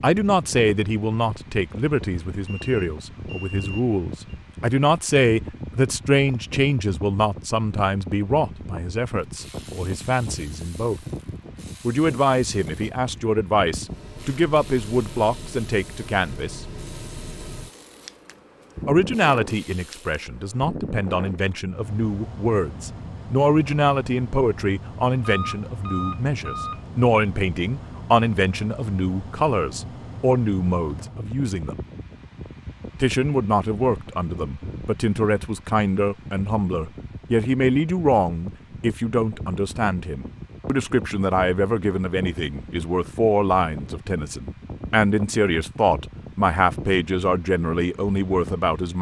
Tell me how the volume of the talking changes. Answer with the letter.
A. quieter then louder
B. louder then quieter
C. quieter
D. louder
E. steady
E.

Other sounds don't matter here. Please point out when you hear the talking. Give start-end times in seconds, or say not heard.
0.0-11.0, 11.8-16.6, 18.9-31.8, 33.0-48.9.